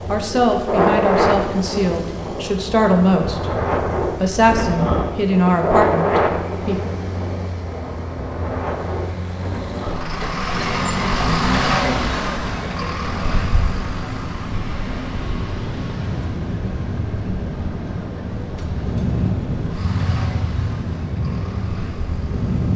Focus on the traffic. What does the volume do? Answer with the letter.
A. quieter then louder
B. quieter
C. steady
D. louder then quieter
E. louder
D.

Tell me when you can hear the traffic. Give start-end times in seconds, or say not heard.
0.0-22.7.